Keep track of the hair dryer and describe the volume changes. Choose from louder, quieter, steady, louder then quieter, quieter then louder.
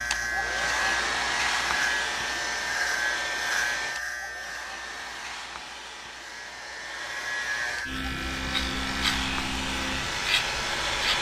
quieter then louder.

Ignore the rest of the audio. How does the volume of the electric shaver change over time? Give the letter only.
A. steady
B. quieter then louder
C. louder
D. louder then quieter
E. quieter
B.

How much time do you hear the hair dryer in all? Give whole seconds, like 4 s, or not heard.
11 s.